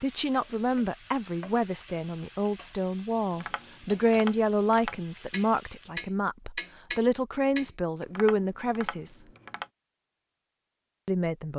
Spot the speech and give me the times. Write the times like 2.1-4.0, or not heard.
0.0-9.2, 11.1-11.5.